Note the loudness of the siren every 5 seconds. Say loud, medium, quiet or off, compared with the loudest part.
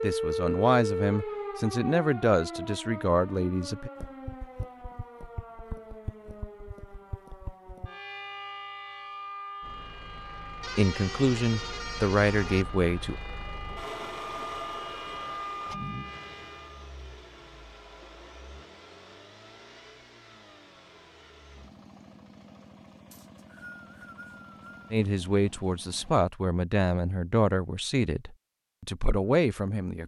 loud, medium, medium, medium, off, off.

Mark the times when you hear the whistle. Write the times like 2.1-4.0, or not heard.
23.1-24.9.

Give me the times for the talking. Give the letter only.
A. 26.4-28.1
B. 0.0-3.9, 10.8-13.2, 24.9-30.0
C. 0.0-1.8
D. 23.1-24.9
B.